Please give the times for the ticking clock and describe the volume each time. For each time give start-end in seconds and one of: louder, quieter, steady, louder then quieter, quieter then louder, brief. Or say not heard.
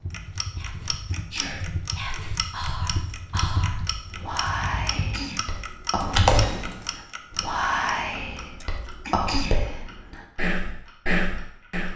0.1-11.9 quieter.